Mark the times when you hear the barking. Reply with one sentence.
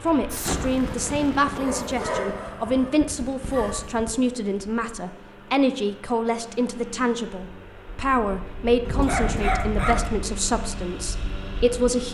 The barking can be heard from 1.6 to 3.9 s and from 8.8 to 10.1 s.